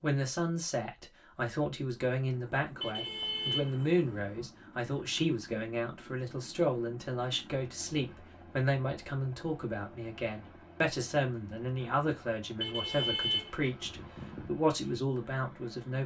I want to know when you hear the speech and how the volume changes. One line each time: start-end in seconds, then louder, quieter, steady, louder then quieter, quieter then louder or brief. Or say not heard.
0.0-16.0 steady.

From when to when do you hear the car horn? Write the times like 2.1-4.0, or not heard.
2.8-4.5, 12.6-14.5.